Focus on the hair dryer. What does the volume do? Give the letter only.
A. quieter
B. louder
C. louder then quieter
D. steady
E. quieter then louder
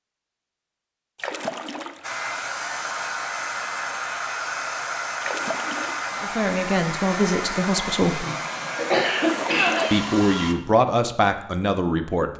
D.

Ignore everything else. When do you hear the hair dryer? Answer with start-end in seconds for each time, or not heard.
2.0-10.6.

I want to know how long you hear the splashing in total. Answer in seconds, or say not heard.
3 s.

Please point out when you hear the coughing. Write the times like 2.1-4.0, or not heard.
8.2-9.8.